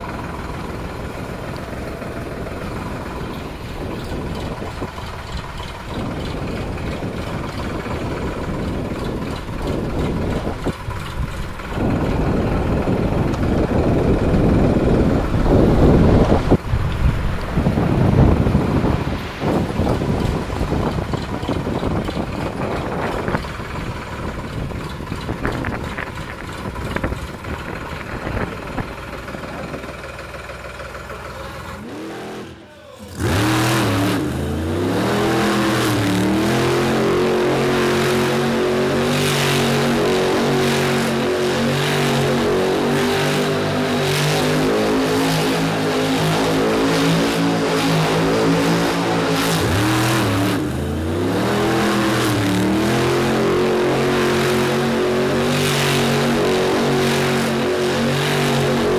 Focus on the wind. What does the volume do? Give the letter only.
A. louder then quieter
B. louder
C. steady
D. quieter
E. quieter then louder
A.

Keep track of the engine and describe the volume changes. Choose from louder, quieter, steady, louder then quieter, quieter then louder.
louder.